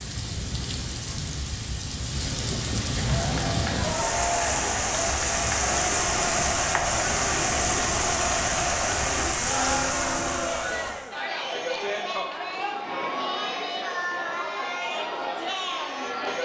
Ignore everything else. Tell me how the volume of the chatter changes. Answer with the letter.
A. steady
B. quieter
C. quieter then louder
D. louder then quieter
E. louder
A.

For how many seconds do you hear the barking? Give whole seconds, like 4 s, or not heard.
not heard.